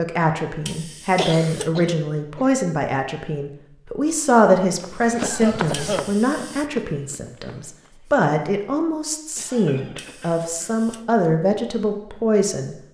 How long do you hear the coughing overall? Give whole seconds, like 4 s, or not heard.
4 s.